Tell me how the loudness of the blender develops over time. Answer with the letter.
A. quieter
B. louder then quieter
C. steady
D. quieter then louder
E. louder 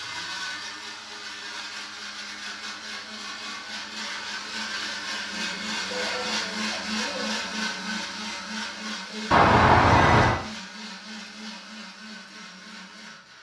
B.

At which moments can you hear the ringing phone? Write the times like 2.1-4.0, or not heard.
9.3-10.4.